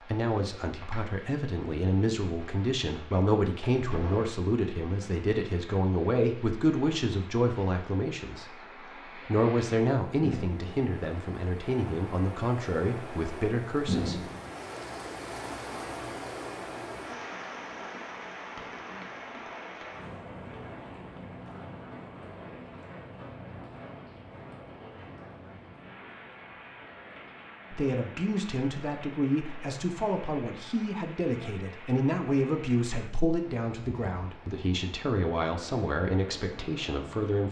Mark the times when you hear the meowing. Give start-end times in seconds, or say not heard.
not heard.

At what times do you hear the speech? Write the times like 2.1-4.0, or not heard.
0.0-14.2, 27.7-37.4.